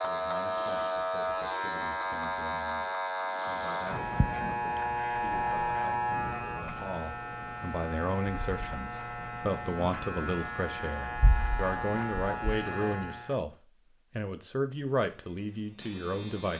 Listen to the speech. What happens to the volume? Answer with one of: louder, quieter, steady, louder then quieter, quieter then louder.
louder.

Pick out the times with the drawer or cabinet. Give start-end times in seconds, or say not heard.
not heard.